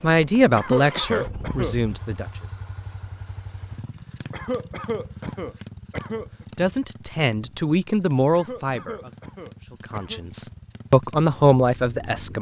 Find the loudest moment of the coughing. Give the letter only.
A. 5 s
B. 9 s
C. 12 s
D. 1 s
D.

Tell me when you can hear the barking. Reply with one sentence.
The barking can't be heard in this clip.